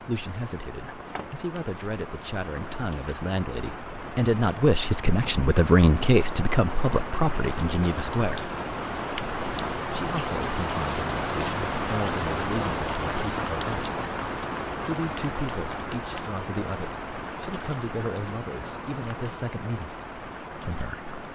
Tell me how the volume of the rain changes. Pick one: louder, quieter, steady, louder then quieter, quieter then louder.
louder then quieter.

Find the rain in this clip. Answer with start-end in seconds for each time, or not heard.
0.0-21.3.